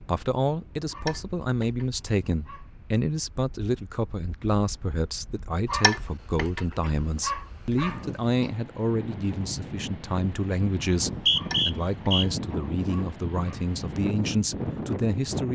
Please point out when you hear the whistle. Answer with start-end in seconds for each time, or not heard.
10.9-12.2.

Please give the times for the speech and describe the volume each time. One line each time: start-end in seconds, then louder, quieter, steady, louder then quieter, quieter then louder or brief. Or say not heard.
0.0-15.5 steady.